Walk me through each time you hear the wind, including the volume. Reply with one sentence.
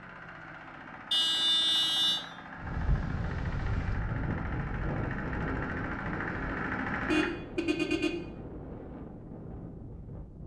You can hear the wind from 2.5 to 10.4 s, getting quieter.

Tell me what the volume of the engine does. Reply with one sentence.
The volume of the engine goes up.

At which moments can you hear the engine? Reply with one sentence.
The engine can be heard from 0.0 to 7.3 s.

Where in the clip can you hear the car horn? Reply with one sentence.
You can hear the car horn from 1.1 to 2.2 s and from 7.0 to 8.2 s.